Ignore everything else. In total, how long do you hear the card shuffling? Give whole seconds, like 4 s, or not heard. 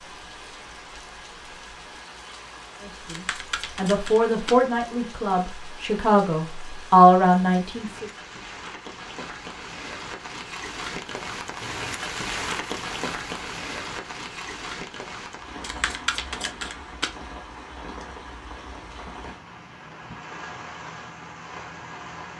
3 s.